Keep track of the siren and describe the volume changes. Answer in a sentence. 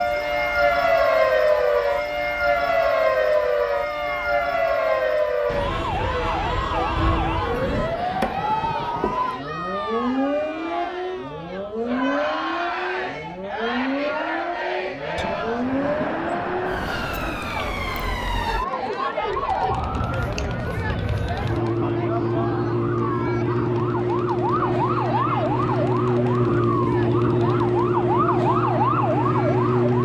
The loudness of the siren goes down, then up.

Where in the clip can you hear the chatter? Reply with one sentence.
The chatter can be heard from 0.0 to 29.9 s.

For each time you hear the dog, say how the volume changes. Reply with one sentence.
You can't hear the dog here.